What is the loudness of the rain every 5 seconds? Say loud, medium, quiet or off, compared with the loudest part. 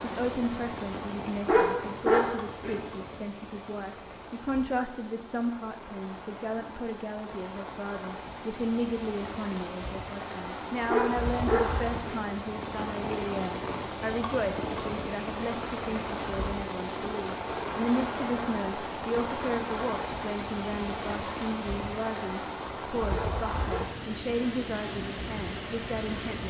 medium, medium, loud, loud, loud, loud.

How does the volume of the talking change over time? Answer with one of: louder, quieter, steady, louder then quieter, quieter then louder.
steady.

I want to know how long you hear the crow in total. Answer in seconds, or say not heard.
not heard.